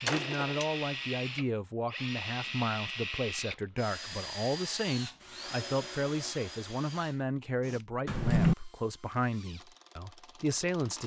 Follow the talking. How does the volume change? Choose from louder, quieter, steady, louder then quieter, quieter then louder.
steady.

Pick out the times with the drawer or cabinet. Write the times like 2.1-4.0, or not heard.
0.1-0.7, 8.1-8.6.